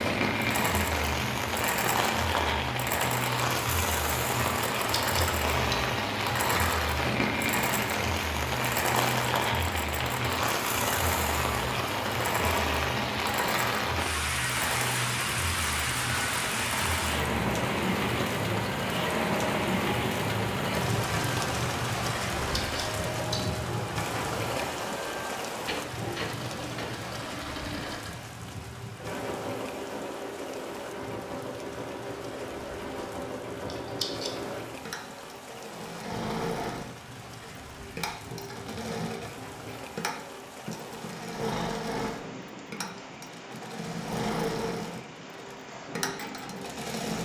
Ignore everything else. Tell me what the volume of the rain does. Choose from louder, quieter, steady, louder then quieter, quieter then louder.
quieter.